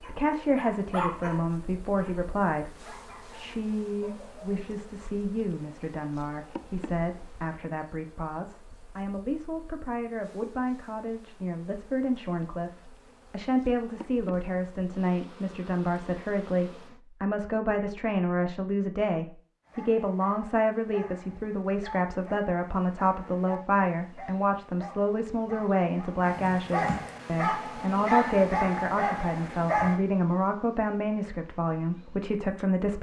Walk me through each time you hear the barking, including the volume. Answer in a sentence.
You can hear the barking from 0.0 to 4.6 s, getting quieter; and from 19.6 to 30.0 s, getting louder.